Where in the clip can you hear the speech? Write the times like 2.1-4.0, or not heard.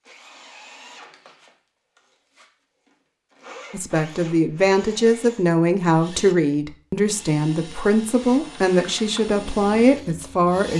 3.7-10.7.